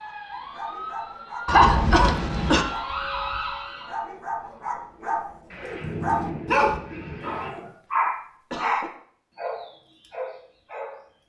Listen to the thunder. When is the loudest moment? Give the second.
6 s.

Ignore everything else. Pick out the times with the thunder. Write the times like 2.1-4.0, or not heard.
5.5-7.5.